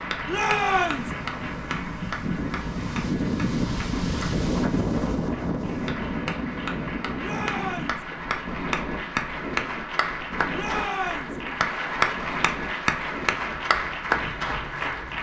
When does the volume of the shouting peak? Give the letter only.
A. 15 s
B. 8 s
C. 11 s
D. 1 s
D.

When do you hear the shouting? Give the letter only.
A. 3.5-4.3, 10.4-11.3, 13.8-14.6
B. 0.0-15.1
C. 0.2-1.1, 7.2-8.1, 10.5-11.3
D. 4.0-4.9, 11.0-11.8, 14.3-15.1
C.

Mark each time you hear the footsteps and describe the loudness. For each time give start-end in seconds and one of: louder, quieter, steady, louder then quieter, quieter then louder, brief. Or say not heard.
not heard.